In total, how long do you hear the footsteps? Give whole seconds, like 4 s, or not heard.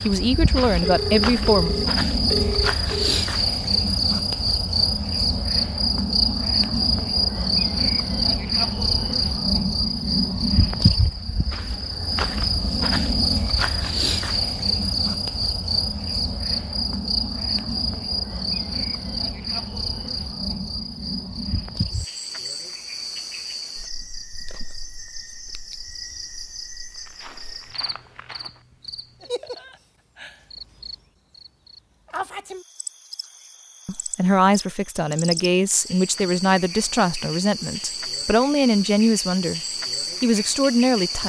2 s.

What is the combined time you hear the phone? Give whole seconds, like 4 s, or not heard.
2 s.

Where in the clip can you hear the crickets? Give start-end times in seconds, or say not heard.
0.0-41.2.